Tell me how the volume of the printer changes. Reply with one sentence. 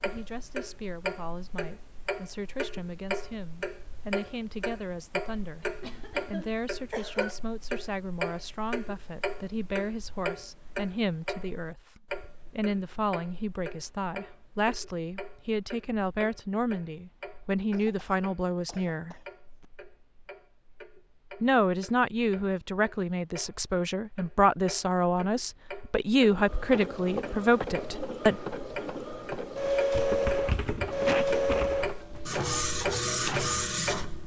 The loudness of the printer goes up.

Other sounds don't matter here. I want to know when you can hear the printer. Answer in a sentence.
The printer can be heard from 26.2 to 34.2 s.